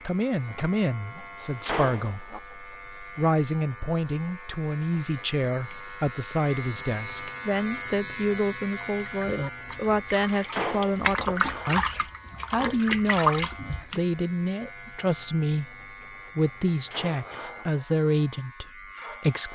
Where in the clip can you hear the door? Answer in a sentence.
The door can be heard from 1.4 to 2.4 s, from 10.3 to 11.1 s and from 16.7 to 17.6 s.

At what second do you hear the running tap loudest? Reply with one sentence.
The volume of the running tap peaks at 13 seconds.